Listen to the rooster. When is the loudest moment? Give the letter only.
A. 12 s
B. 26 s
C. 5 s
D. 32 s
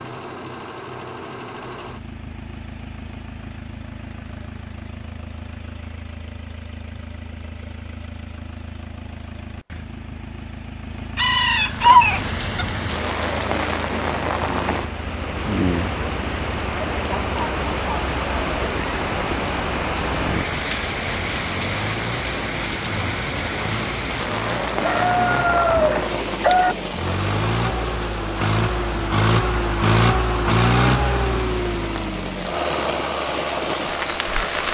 A.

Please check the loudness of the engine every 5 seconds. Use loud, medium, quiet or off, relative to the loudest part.
quiet, quiet, quiet, quiet, medium, loud, loud.